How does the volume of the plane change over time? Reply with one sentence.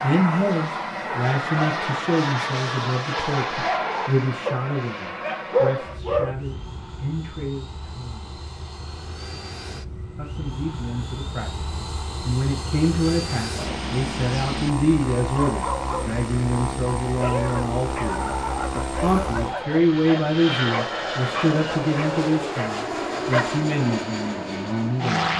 The loudness of the plane goes down, then up.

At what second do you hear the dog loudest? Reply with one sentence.
The volume of the dog peaks at 6 seconds.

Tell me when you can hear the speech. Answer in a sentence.
You can hear the speech from 0.0 to 8.3 s and from 10.2 to 25.3 s.